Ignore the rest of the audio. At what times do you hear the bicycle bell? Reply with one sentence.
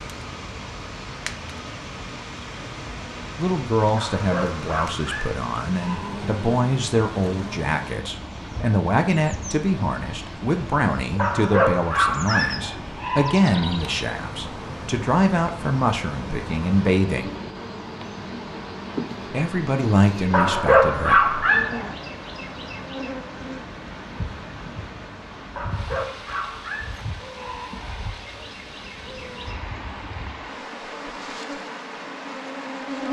The bicycle bell can't be heard in this clip.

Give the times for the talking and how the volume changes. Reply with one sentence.
The talking can be heard from 3.4 to 17.3 s, at a steady volume; and briefly from 19.3 to 21.4 s.